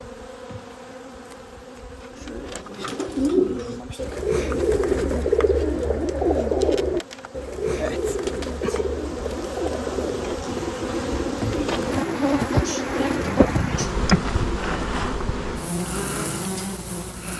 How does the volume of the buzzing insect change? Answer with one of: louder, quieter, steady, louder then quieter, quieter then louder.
louder.